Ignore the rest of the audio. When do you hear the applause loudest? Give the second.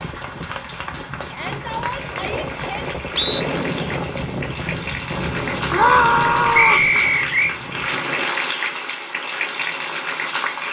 8 s.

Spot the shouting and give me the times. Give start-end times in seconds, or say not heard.
1.2-2.9, 5.7-6.9.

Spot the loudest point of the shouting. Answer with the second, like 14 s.
6 s.